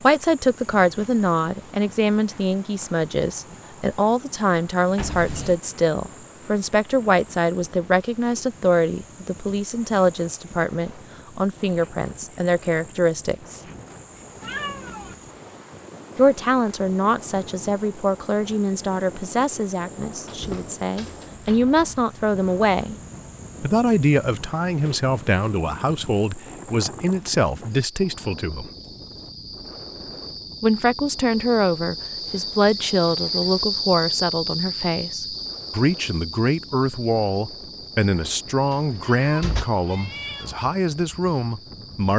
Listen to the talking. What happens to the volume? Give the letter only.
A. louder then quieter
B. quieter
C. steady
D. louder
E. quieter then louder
C.